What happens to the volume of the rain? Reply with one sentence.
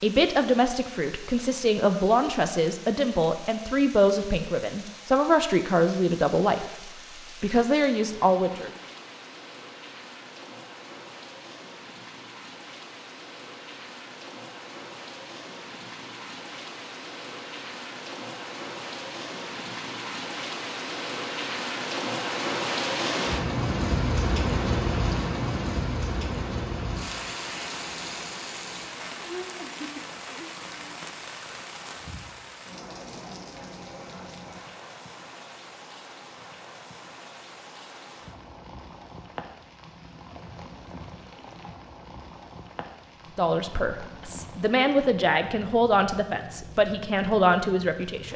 The loudness of the rain goes up, then down.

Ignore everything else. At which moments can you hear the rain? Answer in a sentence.
The rain can be heard from 0.0 to 48.3 s.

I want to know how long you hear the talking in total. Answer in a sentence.
The talking can be heard for 14 seconds in total.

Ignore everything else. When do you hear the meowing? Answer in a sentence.
The meowing can't be heard in this clip.